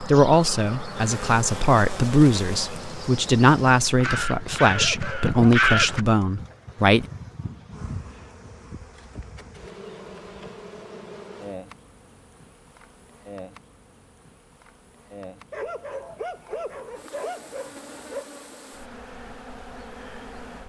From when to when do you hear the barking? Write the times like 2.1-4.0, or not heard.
4.7-6.2, 15.5-18.2.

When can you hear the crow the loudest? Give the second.
6 s.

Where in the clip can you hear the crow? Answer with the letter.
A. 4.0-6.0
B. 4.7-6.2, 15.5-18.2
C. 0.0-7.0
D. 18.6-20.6
A.